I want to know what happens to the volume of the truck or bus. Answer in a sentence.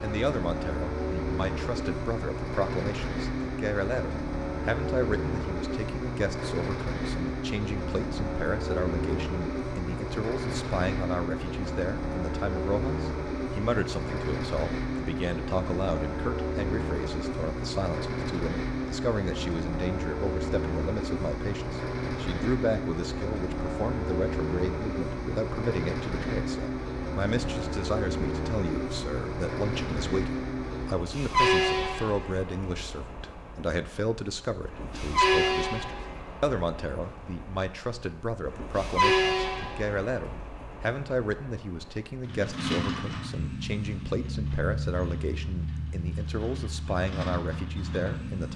The volume of the truck or bus stays about the same.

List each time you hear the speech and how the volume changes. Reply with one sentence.
The speech can be heard from 0.0 to 48.5 s, at a steady volume.